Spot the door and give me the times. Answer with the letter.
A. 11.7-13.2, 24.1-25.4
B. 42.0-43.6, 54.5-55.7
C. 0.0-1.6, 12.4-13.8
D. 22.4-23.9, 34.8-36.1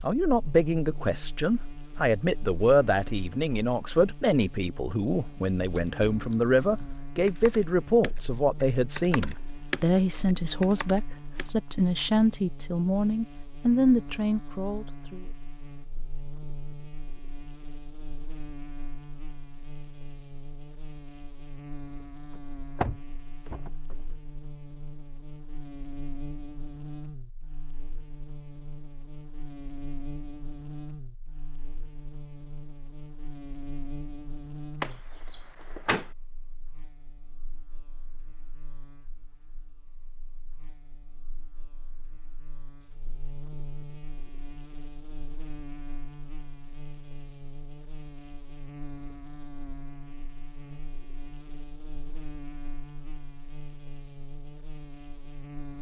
D.